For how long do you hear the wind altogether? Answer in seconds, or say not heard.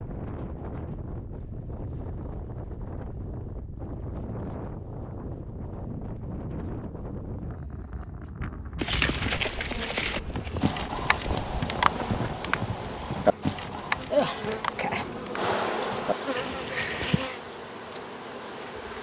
19 s.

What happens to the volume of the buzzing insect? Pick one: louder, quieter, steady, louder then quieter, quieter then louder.
louder then quieter.